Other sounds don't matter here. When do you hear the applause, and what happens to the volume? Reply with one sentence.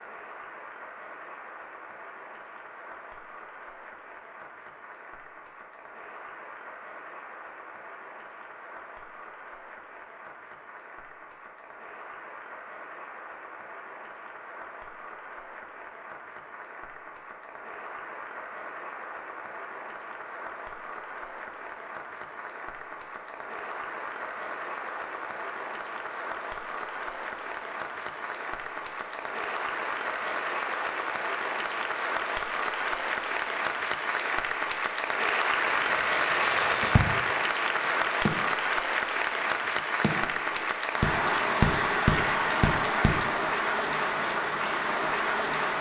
The applause can be heard from 0.0 to 45.7 s, getting louder.